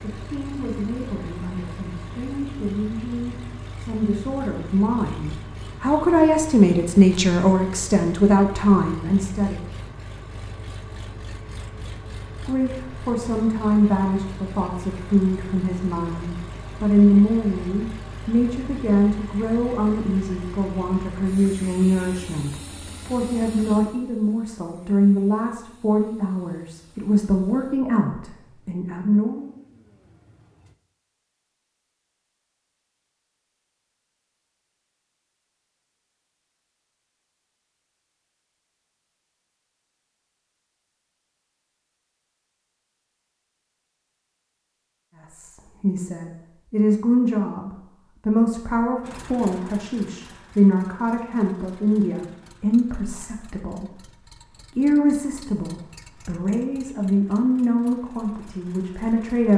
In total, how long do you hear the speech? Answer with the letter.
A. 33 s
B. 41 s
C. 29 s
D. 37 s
B.